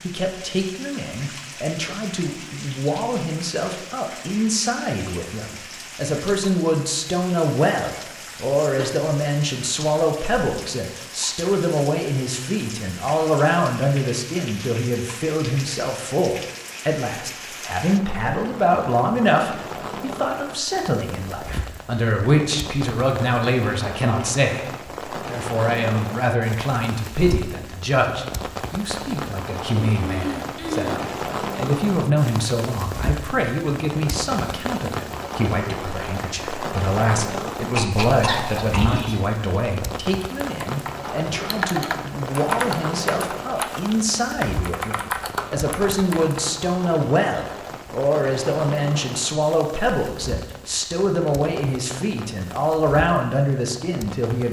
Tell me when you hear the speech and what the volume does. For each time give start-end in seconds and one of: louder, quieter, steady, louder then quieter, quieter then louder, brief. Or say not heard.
0.0-54.4 steady.